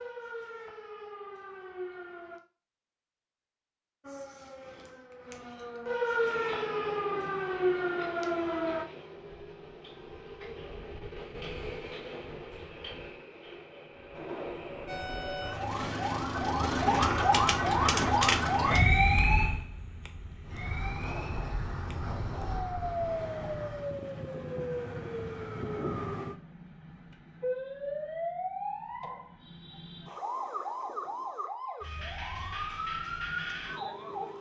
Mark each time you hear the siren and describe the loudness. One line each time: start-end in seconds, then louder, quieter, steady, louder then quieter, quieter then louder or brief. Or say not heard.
0.0-2.4 brief
4.0-8.8 louder
14.8-34.3 quieter.